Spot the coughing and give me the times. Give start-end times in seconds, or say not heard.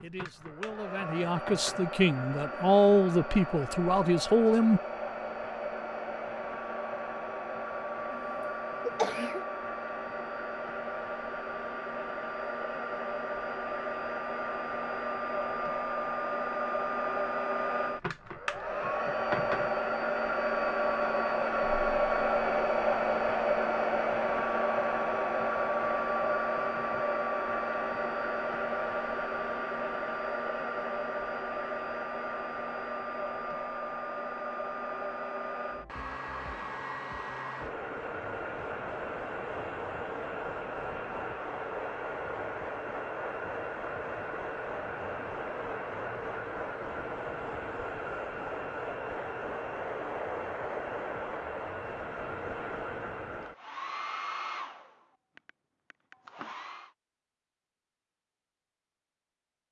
8.1-9.4.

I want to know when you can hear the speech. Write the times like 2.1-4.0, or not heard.
0.0-4.8.